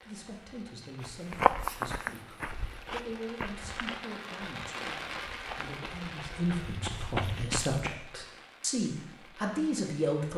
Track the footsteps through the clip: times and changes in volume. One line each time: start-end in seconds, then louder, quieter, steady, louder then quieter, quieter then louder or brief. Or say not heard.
1.0-8.0 quieter then louder.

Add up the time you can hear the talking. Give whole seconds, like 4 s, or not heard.
10 s.